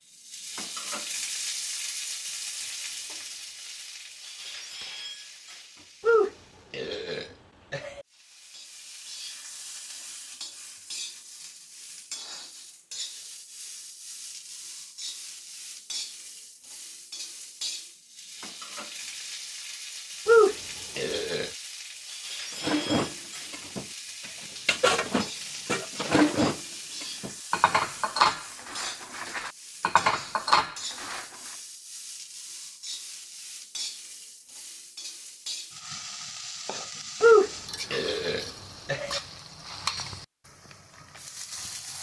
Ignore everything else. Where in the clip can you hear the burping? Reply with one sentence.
The burping can be heard from 6.0 to 8.1 s, from 20.2 to 21.5 s and from 37.2 to 39.2 s.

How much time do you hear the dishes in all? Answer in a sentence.
The dishes can be heard for 9 seconds in total.